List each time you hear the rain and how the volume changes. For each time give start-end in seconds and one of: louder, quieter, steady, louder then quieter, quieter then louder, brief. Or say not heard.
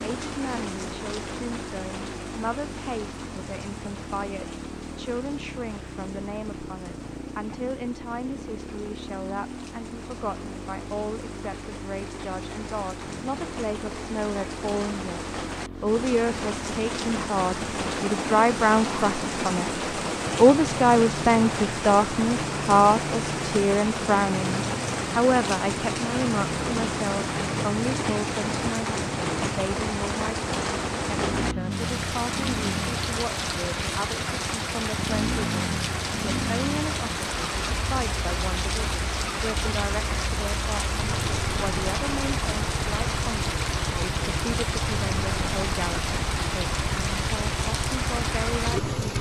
0.0-49.1 louder.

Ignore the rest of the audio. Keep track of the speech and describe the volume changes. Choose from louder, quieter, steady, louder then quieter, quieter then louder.
louder then quieter.